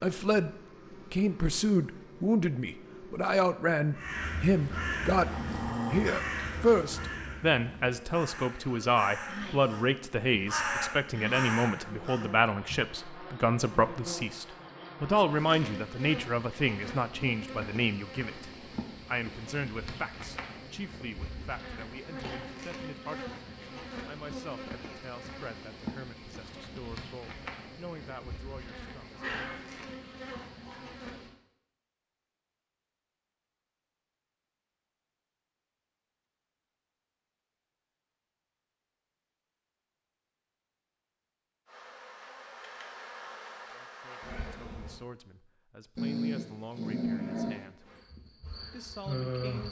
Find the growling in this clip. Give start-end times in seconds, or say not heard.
5.2-7.1, 29.1-30.8, 46.0-47.6.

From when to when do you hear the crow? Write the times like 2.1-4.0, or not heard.
3.9-12.8.